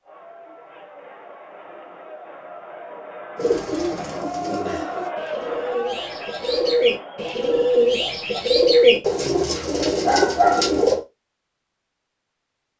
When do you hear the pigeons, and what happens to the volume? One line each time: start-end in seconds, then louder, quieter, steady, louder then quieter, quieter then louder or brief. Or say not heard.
3.4-11.0 louder.